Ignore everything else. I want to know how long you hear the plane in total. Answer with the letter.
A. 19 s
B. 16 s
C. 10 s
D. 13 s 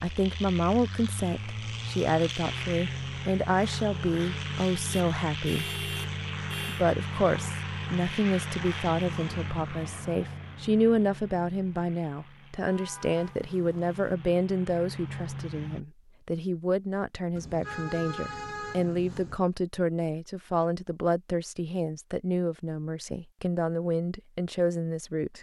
B.